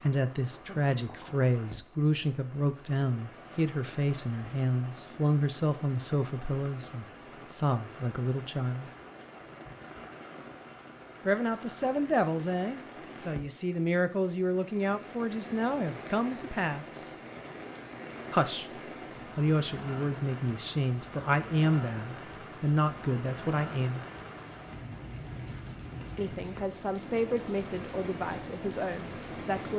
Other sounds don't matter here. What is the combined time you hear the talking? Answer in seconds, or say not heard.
24 s.